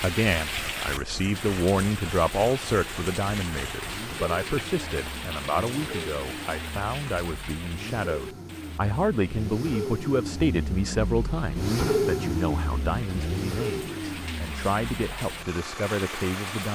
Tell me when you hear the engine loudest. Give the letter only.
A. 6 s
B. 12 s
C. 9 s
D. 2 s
B.